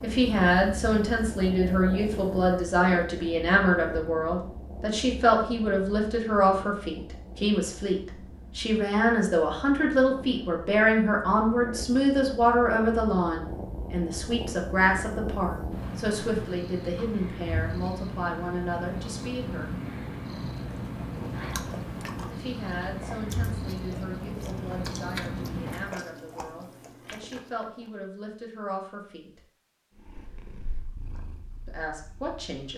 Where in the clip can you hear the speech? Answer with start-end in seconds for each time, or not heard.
0.0-19.7, 22.3-29.4, 31.6-32.7.